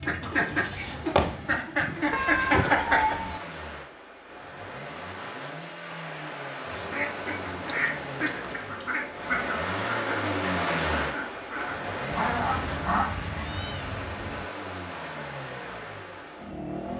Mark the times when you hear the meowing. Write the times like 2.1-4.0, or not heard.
2.1-3.4, 5.9-7.9, 12.1-14.5.